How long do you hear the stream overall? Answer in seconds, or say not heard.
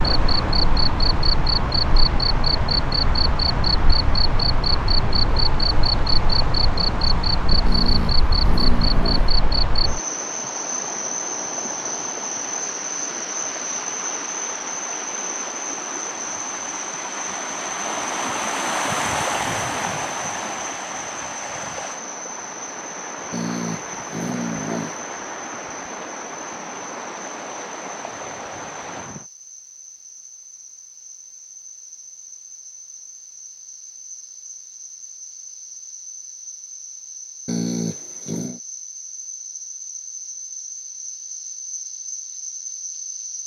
29 s.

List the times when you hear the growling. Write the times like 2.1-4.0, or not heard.
7.7-9.3, 23.3-25.0, 37.5-38.6.